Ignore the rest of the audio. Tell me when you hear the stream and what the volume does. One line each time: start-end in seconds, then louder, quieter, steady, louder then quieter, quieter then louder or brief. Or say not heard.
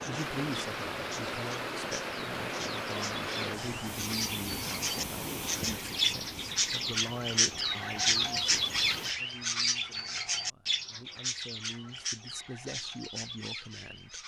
0.0-9.2 quieter.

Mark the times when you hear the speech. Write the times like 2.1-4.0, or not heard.
0.0-14.2.